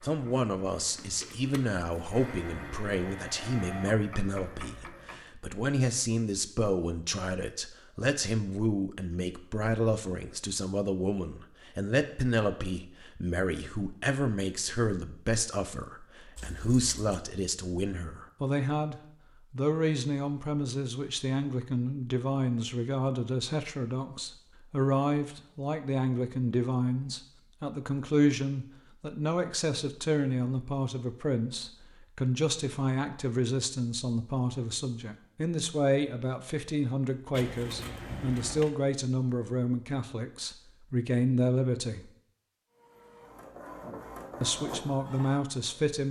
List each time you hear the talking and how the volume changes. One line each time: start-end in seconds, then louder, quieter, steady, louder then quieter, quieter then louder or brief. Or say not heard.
0.0-42.1 steady
44.4-46.0 brief.